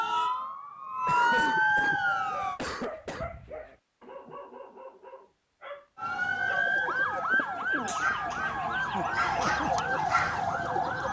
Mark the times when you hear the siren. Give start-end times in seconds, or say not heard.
0.0-2.6, 6.0-11.0.